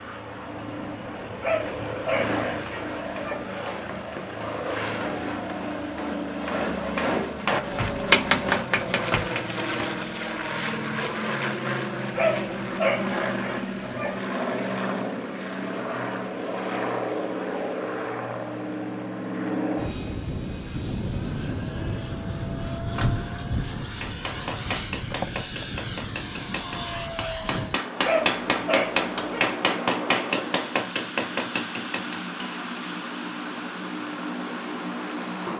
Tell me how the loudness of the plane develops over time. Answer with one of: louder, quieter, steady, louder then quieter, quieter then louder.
steady.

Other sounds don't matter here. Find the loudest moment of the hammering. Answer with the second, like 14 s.
8 s.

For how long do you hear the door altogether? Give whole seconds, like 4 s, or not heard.
3 s.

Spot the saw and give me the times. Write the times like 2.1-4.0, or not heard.
not heard.